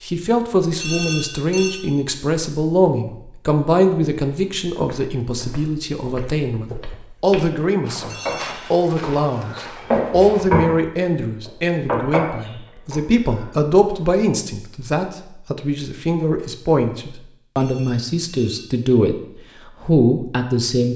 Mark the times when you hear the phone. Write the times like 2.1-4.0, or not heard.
0.8-1.9, 8.1-8.7, 17.6-18.7.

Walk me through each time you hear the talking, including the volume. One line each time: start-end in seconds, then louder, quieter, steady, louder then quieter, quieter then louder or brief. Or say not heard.
0.0-19.2 steady
19.8-20.9 brief.